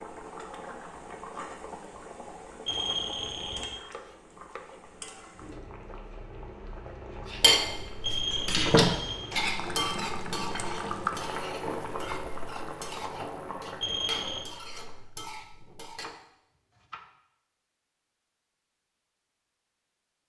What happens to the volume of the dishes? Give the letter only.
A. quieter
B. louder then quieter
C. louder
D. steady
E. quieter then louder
A.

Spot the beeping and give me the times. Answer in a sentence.
You can hear the beeping from 2.6 to 3.8 s, from 8.0 to 9.3 s and from 13.8 to 14.5 s.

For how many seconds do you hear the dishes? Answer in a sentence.
You can hear the dishes for 9 seconds altogether.